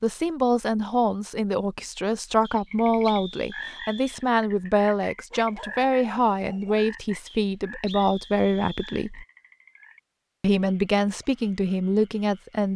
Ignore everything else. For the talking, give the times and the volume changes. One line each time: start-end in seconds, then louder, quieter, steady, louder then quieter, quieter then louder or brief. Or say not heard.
0.0-9.2 steady
10.4-12.7 brief.